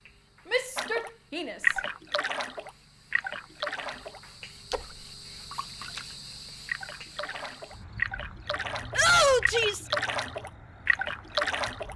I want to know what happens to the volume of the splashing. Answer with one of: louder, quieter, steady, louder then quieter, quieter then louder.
quieter then louder.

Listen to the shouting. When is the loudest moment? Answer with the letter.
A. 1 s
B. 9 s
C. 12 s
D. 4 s
B.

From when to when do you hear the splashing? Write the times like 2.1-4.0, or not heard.
0.8-11.9.